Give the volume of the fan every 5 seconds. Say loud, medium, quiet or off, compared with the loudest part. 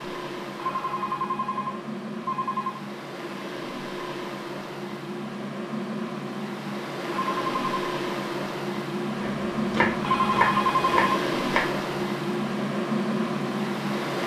medium, loud, loud.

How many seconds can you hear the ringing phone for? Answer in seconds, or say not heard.
4 s.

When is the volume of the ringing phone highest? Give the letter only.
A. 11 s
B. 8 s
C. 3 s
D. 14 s
A.